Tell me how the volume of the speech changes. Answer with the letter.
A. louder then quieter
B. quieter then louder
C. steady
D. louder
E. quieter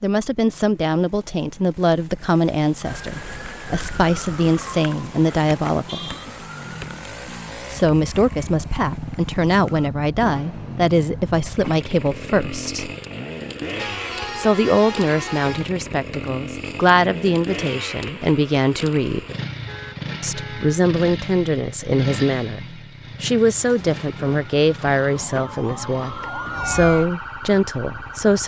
C.